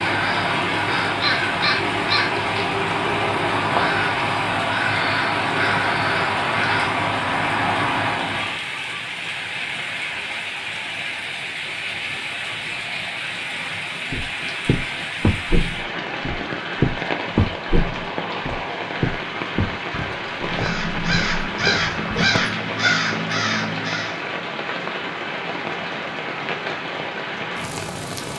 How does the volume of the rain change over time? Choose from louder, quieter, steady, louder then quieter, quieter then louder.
steady.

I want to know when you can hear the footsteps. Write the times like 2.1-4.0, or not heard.
14.1-22.4.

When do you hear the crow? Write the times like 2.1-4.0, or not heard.
0.0-8.6, 20.4-24.2.